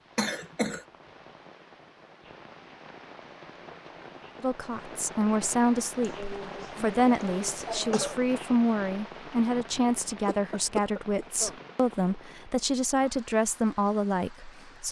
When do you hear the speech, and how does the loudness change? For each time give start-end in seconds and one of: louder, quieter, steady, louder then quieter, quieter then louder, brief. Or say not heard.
4.4-14.8 steady.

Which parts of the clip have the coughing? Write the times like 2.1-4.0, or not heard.
0.1-0.8, 6.0-8.2, 10.1-11.6.